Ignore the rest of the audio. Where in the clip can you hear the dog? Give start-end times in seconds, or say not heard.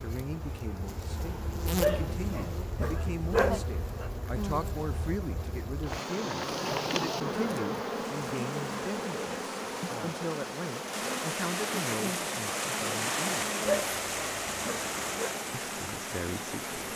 1.8-4.1, 13.7-15.3.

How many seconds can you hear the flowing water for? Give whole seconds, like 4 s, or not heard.
9 s.